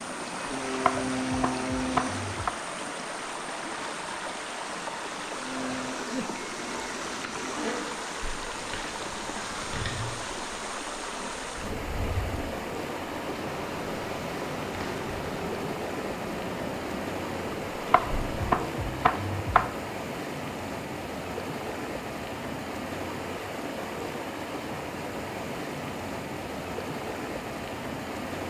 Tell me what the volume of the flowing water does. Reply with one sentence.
The volume of the flowing water stays about the same.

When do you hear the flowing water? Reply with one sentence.
The flowing water can be heard from 0.0 to 28.4 s.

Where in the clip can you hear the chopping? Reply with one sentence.
You can hear the chopping from 0.8 to 2.5 s and from 17.9 to 19.7 s.